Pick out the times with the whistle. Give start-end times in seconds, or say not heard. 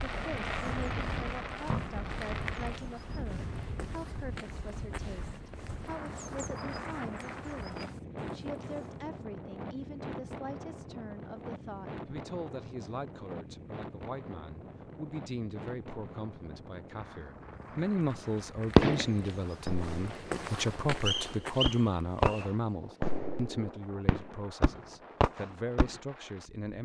21.1-22.4.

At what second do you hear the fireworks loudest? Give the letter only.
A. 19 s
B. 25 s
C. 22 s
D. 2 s
A.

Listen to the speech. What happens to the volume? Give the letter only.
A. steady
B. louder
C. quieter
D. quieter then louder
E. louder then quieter
B.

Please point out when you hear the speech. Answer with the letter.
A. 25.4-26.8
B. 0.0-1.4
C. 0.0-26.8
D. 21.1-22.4
C.